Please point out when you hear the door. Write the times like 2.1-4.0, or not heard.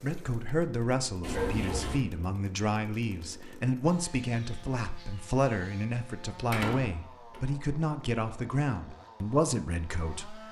1.2-2.0, 6.5-7.4.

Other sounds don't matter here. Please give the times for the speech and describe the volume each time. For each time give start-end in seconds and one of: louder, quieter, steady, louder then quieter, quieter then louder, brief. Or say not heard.
0.0-10.4 steady.